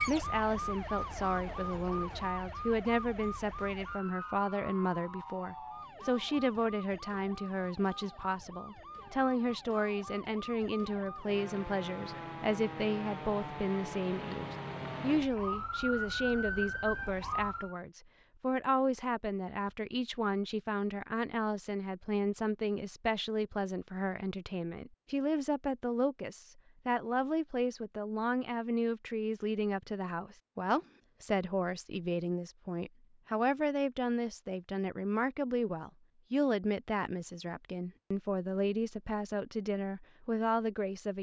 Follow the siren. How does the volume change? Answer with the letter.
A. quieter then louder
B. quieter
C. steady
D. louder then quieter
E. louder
A.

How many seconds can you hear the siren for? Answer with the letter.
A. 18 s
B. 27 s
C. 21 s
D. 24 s
A.